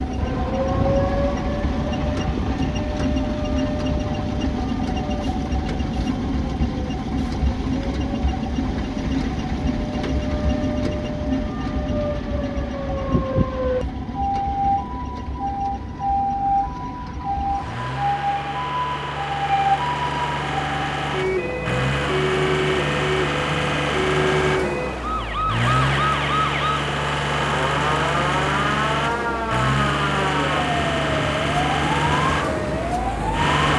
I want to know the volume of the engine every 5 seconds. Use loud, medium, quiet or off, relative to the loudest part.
loud, loud, medium, medium, loud, loud, loud.